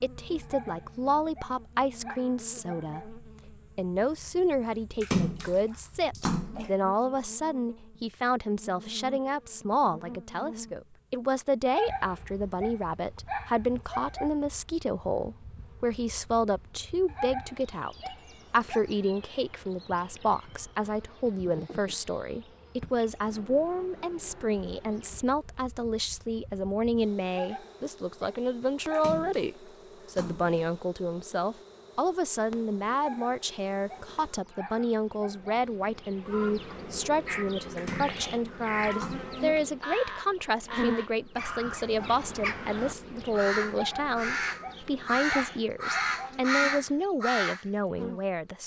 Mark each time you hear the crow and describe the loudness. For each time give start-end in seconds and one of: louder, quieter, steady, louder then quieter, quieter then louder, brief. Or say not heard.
37.2-47.6 louder.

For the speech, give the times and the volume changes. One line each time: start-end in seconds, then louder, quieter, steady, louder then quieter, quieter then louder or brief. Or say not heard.
0.0-48.6 steady.